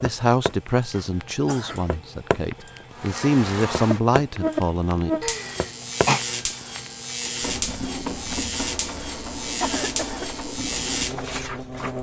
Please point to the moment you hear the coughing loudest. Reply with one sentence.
The volume of the coughing peaks at 6 seconds.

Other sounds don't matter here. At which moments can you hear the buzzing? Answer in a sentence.
The buzzing can be heard from 3.0 to 11.9 s.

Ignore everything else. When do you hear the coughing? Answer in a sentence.
You can hear the coughing from 0.5 to 1.9 s, from 5.2 to 6.2 s and from 9.6 to 10.2 s.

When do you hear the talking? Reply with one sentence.
You can hear the talking from 0.0 to 5.2 s.